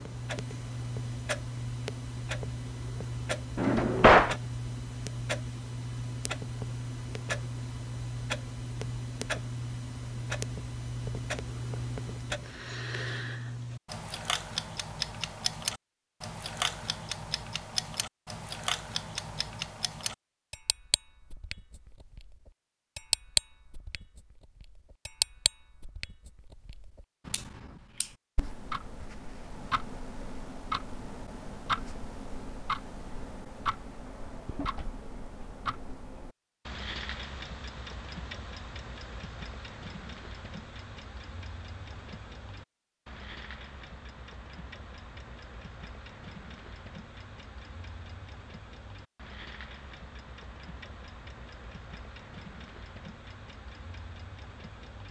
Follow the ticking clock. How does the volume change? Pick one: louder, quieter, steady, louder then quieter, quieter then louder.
quieter.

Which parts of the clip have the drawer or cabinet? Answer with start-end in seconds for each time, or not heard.
3.5-4.3, 34.0-35.5.